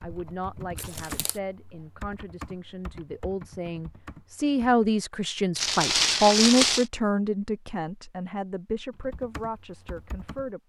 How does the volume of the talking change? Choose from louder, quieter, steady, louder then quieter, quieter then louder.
louder then quieter.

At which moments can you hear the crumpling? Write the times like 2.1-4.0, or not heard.
0.8-1.4, 5.5-6.8.